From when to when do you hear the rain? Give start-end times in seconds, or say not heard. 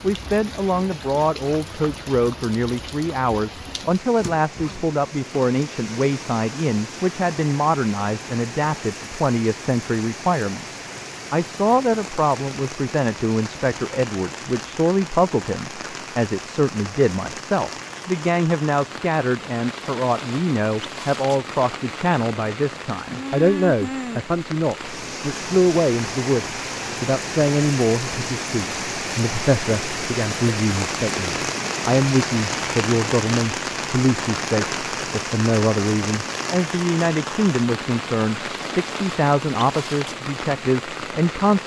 0.0-41.6.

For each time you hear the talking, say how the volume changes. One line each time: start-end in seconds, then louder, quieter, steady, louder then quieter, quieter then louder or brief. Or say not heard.
0.0-41.6 steady.